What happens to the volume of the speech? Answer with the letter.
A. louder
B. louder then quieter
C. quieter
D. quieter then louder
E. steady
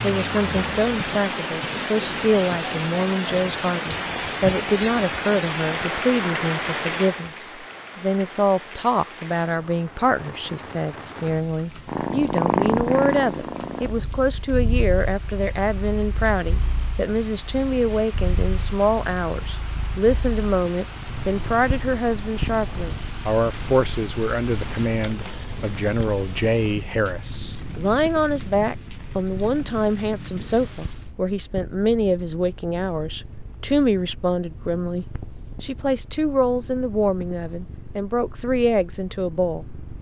E.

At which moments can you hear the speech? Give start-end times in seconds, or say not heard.
0.0-39.6.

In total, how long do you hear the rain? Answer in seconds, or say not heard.
31 s.